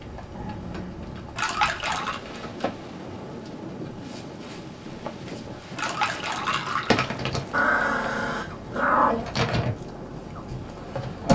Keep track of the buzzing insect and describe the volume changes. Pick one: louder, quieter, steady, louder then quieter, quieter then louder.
louder.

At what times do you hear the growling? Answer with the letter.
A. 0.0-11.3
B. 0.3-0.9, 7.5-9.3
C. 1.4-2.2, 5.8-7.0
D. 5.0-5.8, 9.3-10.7
B.